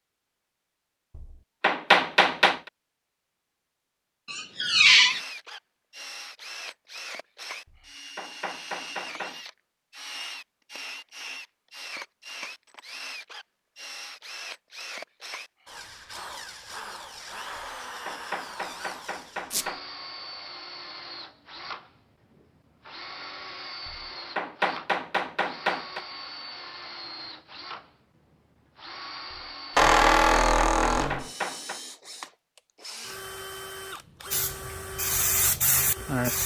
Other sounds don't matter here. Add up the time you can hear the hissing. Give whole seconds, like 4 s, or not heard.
2 s.